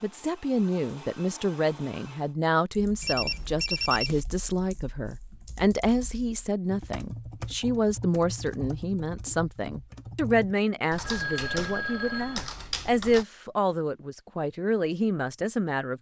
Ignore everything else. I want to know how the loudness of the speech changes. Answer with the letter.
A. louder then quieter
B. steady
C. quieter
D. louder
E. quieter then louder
B.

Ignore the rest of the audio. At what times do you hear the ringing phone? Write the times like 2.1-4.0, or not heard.
3.0-4.2, 11.0-12.5.